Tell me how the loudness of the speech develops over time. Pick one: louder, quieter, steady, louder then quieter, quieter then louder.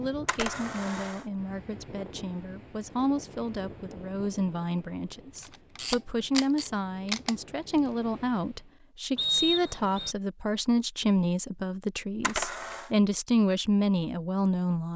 louder.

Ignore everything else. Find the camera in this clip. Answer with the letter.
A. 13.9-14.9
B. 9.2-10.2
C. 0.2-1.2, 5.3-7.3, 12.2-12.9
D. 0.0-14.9
C.